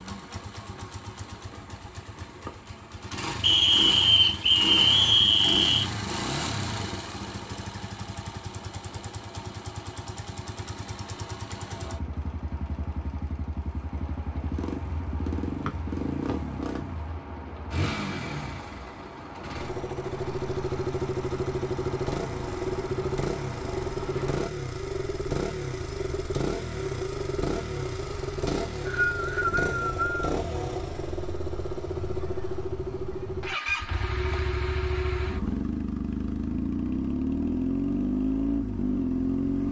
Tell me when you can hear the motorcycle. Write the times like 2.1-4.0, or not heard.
0.0-39.6.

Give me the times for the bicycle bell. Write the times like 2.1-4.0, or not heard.
not heard.